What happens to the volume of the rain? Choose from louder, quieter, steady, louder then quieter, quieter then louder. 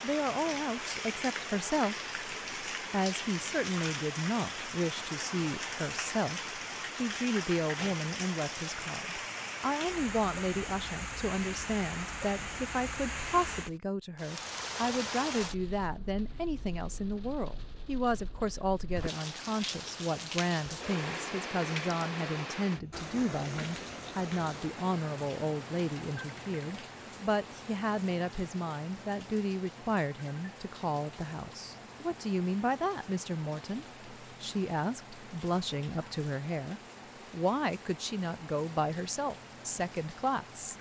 quieter.